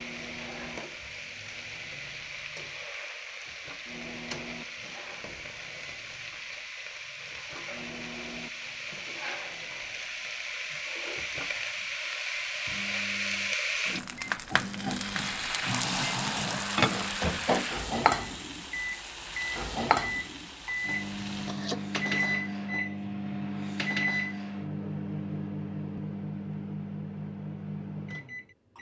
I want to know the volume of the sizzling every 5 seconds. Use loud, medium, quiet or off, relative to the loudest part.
medium, medium, loud, loud, medium, off.